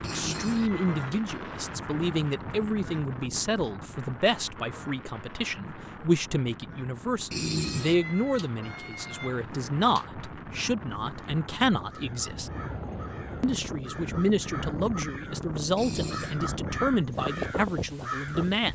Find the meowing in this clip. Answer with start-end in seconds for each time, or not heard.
0.0-1.4, 7.3-10.1, 15.8-16.4.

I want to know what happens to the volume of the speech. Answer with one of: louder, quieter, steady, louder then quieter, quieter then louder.
steady.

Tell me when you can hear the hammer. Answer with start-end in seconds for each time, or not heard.
not heard.